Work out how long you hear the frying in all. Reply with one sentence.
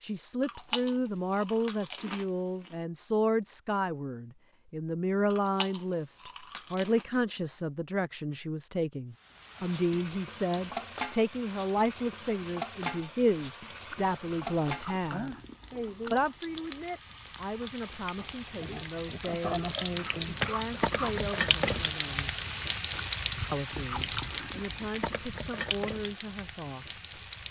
The frying can be heard for 18 seconds in total.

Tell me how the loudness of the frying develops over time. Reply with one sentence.
The volume of the frying goes up, then down.